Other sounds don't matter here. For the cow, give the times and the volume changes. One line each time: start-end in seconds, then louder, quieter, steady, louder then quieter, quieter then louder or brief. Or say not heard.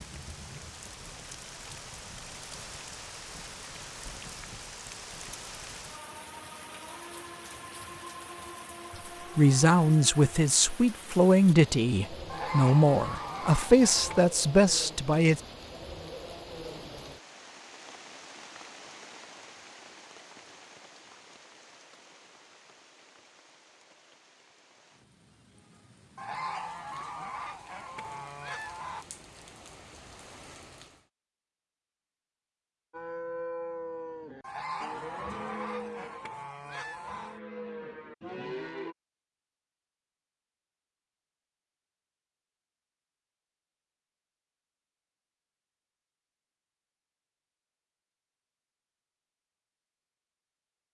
32.9-39.0 quieter then louder.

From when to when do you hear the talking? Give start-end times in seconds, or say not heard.
9.3-15.4.